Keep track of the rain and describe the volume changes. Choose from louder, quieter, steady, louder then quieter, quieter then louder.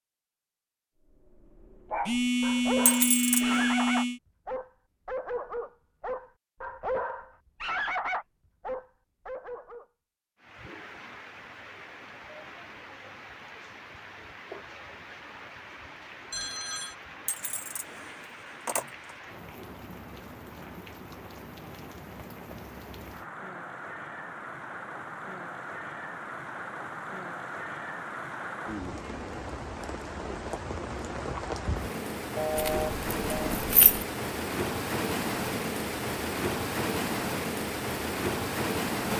louder.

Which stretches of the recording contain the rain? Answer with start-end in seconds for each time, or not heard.
10.3-39.1.